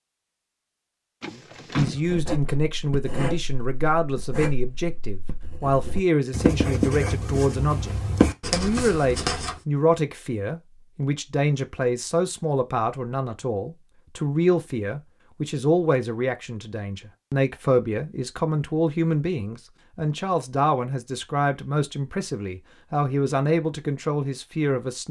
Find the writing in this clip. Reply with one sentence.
You can hear the writing from 2.0 to 9.6 s.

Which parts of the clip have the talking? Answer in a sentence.
You can hear the talking from 1.8 to 25.0 s.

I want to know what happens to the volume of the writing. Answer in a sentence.
The loudness of the writing goes up.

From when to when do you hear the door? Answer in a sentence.
You can hear the door from 1.2 to 2.0 s.